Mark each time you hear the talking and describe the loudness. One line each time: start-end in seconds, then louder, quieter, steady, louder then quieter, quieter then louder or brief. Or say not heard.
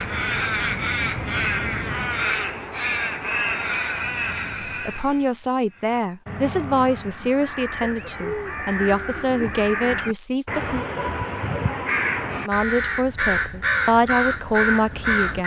4.7-10.8 steady
12.4-15.4 brief.